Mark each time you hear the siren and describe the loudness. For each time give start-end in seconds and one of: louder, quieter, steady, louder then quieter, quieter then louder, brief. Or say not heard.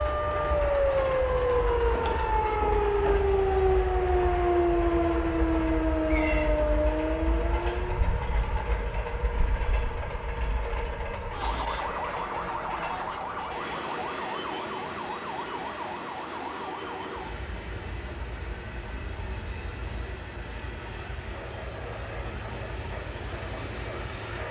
0.0-24.4 quieter.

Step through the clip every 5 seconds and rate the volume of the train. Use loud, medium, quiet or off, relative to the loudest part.
loud, loud, loud, medium, medium.